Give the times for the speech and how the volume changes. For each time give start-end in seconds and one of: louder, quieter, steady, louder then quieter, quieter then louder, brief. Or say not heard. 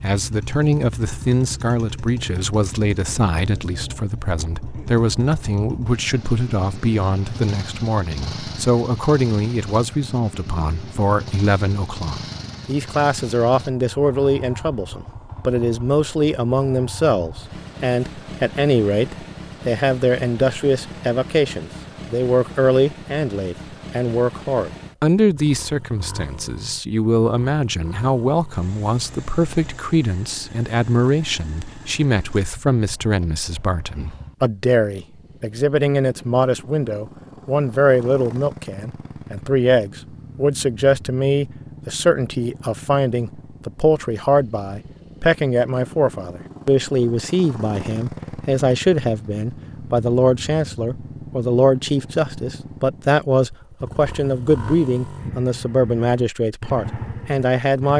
0.0-57.9 steady.